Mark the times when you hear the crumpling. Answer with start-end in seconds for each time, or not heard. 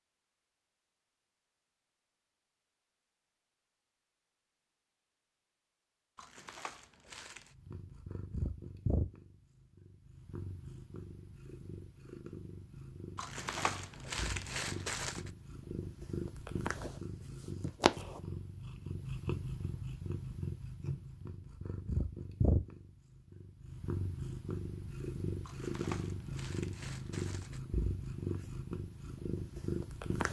6.2-7.5, 13.2-15.3, 25.4-27.6.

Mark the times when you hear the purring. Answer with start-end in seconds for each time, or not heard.
7.5-30.2.